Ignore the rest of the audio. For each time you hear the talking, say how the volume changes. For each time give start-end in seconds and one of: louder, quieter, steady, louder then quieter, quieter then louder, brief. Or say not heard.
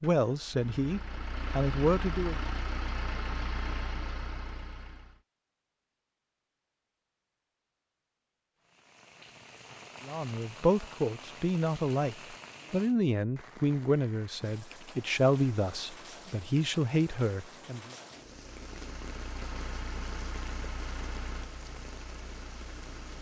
0.0-2.4 brief
10.1-17.9 steady.